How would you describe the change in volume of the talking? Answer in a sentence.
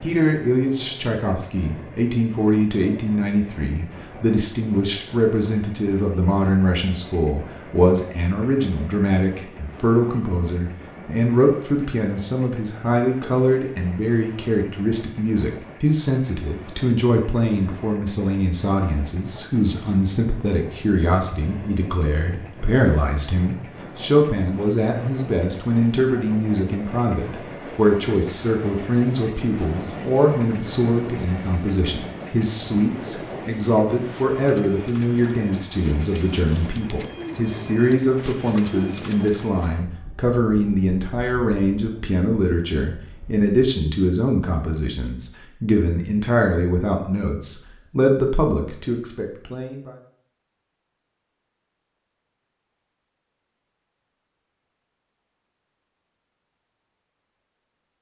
The volume of the talking stays about the same.